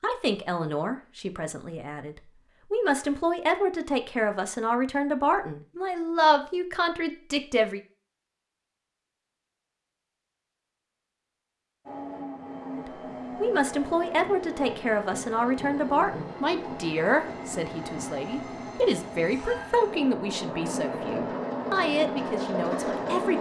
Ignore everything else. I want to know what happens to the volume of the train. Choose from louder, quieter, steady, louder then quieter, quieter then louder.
louder.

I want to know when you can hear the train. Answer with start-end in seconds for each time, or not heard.
11.8-23.3.